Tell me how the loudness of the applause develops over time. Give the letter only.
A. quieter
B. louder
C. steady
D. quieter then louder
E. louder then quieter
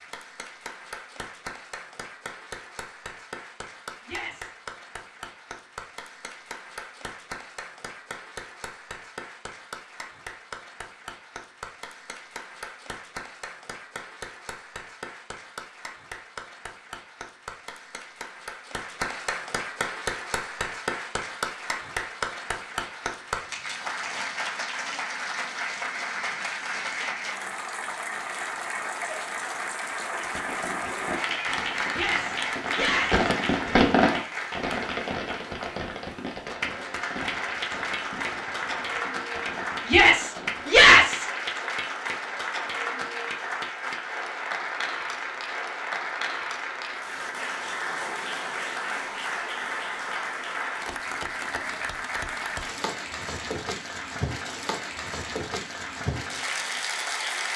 B.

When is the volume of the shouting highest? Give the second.
41 s.